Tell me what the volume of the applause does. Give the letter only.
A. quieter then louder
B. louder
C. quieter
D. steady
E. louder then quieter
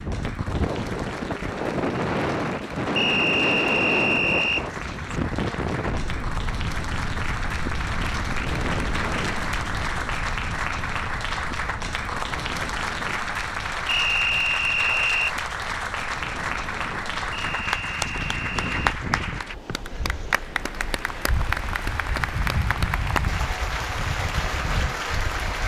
B.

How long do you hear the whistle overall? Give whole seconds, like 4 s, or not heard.
5 s.